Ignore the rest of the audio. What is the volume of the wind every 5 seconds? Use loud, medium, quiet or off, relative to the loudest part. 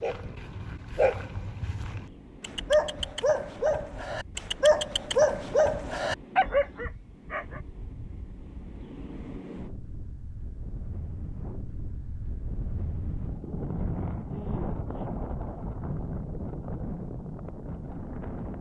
quiet, medium, loud, loud.